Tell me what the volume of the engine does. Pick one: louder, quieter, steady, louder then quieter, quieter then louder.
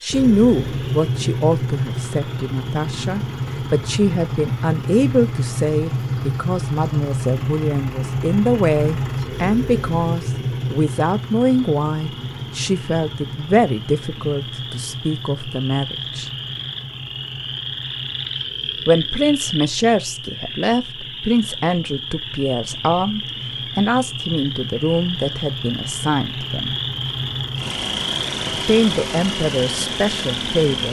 quieter then louder.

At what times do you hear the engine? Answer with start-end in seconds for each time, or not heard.
0.0-30.8.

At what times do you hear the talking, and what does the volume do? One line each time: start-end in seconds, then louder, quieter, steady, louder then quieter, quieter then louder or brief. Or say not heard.
0.0-16.3 steady
18.9-26.8 steady
28.4-30.8 brief.